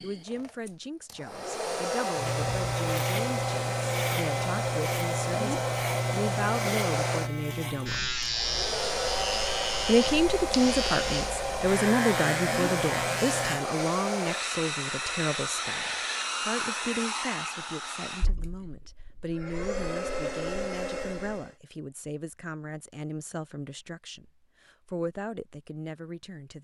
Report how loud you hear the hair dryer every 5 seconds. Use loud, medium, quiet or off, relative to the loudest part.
loud, loud, loud, loud, loud, off.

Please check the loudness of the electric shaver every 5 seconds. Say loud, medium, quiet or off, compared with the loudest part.
loud, loud, loud, off, off, off.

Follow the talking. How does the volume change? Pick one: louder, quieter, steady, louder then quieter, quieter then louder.
louder then quieter.